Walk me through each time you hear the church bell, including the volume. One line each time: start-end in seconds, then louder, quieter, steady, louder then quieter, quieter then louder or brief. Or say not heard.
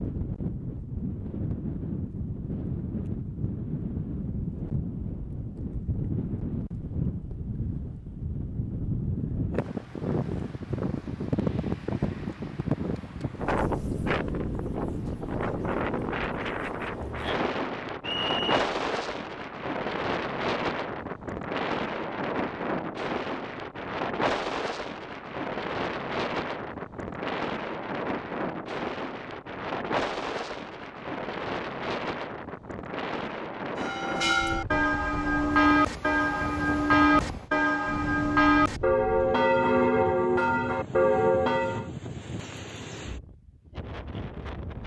33.8-41.9 steady.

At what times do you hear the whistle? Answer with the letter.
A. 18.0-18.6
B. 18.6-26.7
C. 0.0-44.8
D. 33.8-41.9
A.